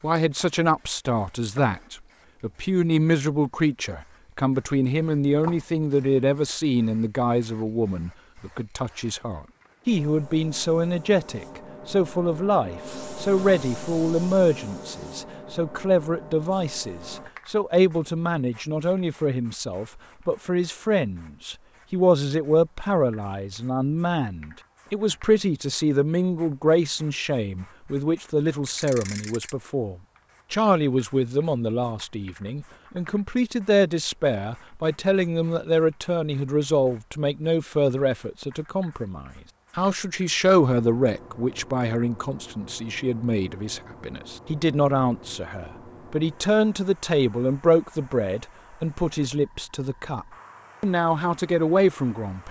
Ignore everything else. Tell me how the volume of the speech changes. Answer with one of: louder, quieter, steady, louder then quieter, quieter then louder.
steady.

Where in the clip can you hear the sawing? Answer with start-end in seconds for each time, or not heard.
not heard.